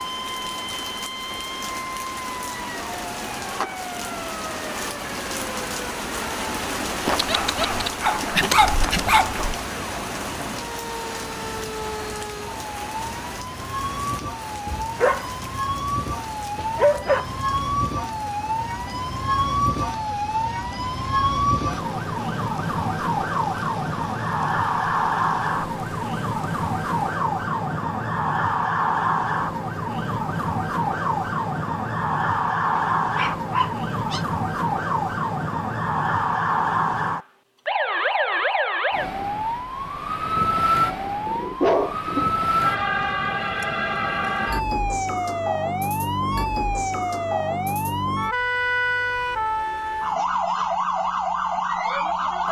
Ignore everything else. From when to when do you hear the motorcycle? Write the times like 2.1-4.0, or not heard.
not heard.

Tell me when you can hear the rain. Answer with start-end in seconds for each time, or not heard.
0.0-27.2.